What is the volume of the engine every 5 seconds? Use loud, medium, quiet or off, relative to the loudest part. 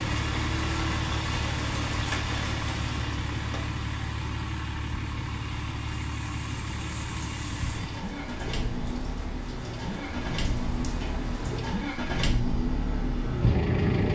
loud, medium, loud.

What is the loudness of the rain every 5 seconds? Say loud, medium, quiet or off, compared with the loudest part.
loud, medium, loud.